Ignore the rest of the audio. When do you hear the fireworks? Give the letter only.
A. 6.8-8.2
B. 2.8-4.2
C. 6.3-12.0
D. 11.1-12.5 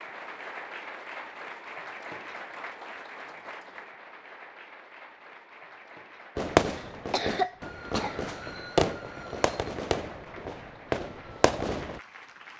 C.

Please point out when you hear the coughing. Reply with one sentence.
The coughing can be heard from 6.8 to 8.2 s.